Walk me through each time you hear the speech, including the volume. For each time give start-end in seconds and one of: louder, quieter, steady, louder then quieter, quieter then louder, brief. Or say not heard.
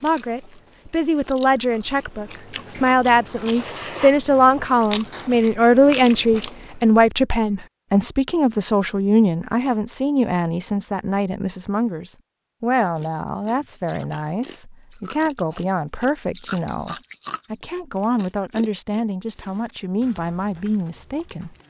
0.0-21.6 quieter.